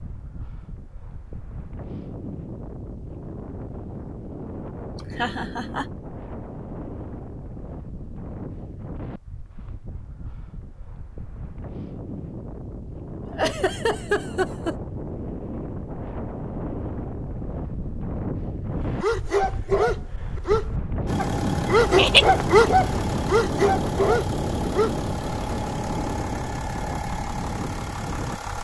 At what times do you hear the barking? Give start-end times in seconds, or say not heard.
19.0-24.9.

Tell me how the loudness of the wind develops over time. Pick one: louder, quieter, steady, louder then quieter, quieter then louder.
louder.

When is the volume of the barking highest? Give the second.
23 s.